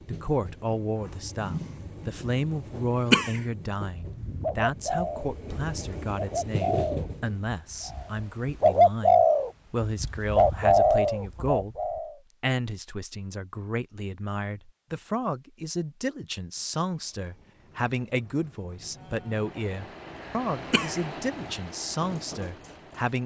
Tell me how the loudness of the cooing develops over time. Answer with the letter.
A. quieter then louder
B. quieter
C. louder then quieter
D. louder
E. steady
D.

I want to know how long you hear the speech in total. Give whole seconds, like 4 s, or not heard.
23 s.